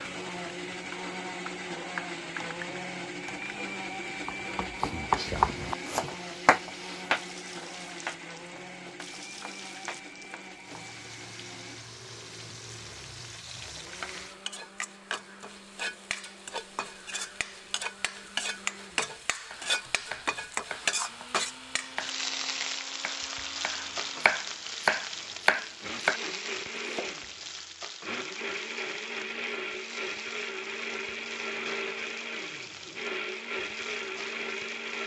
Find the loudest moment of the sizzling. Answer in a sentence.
The volume of the sizzling peaks at 21 seconds.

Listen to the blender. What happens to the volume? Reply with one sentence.
The loudness of the blender goes down, then up.